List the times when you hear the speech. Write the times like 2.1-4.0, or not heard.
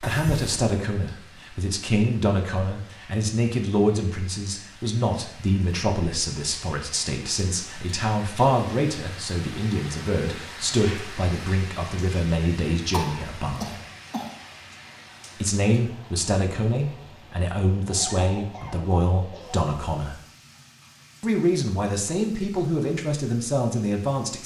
0.0-13.8, 15.4-20.1, 21.2-24.4.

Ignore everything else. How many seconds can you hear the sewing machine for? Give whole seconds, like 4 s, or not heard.
not heard.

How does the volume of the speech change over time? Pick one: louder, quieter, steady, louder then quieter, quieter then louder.
steady.